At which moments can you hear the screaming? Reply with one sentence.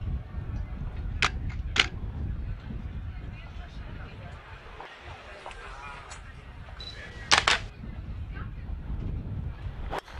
The screaming can't be heard in this clip.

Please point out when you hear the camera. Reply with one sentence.
The camera can be heard from 1.2 to 1.9 s and from 6.8 to 7.7 s.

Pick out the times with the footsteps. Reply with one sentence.
You can't hear the footsteps here.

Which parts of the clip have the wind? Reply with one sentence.
You can hear the wind from 0.0 to 10.1 s.